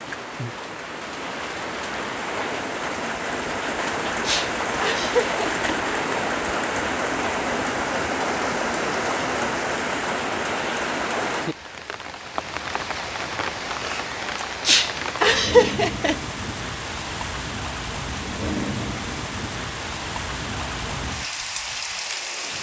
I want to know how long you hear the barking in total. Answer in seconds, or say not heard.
not heard.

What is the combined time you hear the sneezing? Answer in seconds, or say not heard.
3 s.